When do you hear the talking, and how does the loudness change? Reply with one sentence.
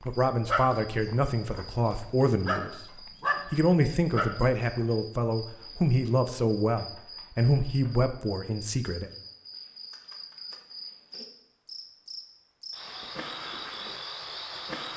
You can hear the talking from 0.1 to 9.1 s, at a steady volume.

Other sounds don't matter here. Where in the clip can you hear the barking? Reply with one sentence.
The barking can be heard from 0.0 to 4.8 s.